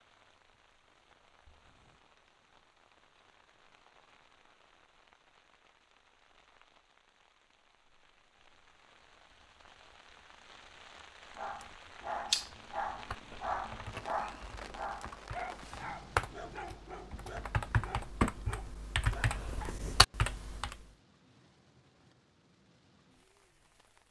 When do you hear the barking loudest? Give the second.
12 s.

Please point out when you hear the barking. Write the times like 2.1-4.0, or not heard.
11.3-19.8.